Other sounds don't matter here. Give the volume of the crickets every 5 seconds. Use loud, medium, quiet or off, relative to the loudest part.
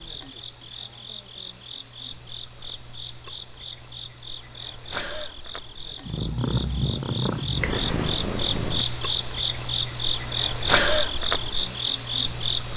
quiet, medium, loud.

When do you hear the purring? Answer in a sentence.
You can hear the purring from 6.0 to 8.8 s.